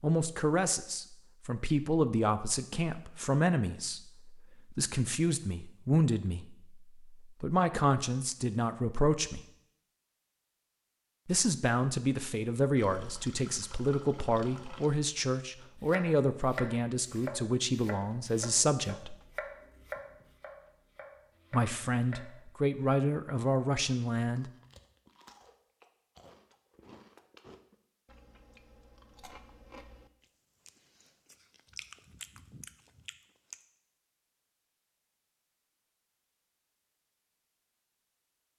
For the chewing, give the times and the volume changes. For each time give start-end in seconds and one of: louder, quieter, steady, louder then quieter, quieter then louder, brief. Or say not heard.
24.1-33.6 louder.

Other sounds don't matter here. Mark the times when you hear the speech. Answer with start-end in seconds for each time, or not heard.
0.0-9.4, 11.2-19.1, 21.5-24.5.